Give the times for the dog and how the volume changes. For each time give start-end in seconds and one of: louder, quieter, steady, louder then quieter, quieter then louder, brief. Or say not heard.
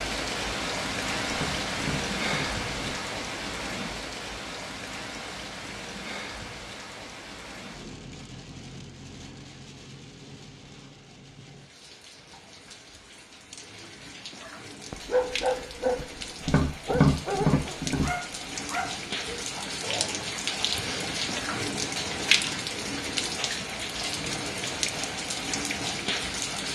14.4-20.2 quieter.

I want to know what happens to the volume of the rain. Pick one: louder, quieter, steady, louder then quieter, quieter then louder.
quieter then louder.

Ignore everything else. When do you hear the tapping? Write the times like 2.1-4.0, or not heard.
1.2-3.0, 16.4-18.1.